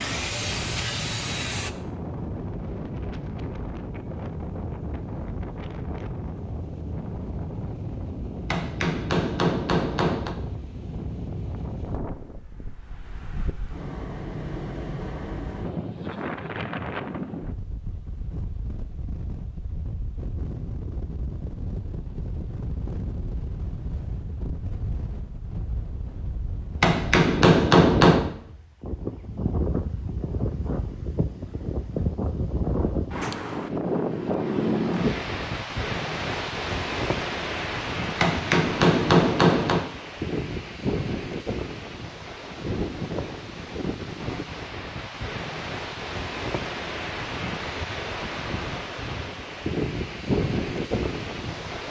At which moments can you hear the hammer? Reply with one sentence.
The hammer can be heard from 8.5 to 10.3 s, from 26.8 to 28.3 s and from 38.2 to 39.9 s.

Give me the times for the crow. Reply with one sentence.
The crow can't be heard in this clip.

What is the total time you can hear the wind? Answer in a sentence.
You can hear the wind for 52 seconds altogether.